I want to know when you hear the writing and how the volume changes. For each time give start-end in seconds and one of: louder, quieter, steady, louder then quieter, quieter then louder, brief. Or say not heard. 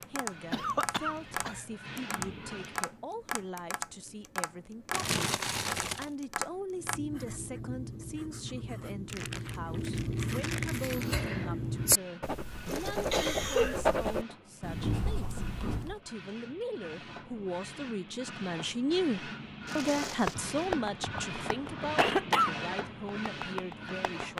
6.7-16.0 louder.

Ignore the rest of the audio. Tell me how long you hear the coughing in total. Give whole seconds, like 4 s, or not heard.
3 s.